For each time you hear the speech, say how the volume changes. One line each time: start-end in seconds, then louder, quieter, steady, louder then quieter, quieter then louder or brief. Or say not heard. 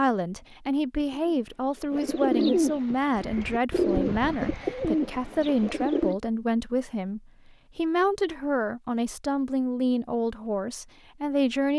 0.0-11.7 steady.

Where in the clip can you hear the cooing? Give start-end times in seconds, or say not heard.
1.1-6.2.